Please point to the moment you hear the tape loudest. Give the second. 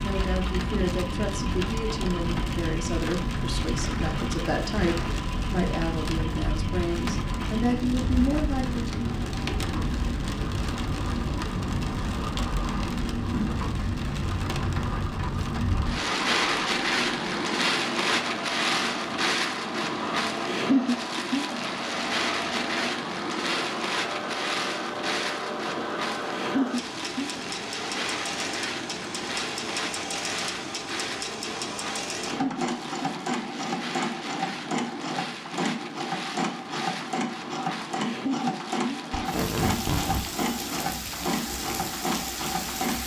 40 s.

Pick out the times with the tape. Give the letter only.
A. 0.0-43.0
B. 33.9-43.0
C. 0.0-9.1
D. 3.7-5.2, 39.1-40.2
D.